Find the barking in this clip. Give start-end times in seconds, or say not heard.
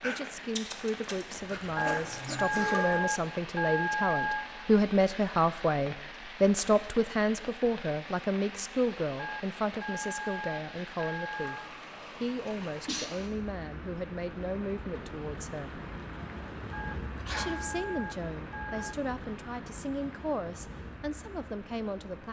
0.0-3.2.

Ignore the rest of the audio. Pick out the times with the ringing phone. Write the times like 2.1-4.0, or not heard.
1.8-4.5, 9.2-11.7, 16.7-18.9.